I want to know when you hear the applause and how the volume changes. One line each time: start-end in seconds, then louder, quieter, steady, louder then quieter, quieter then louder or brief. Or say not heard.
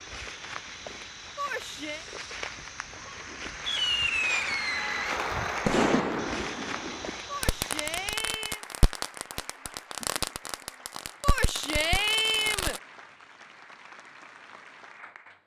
0.0-15.4 louder then quieter.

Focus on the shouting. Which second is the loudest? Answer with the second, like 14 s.
12 s.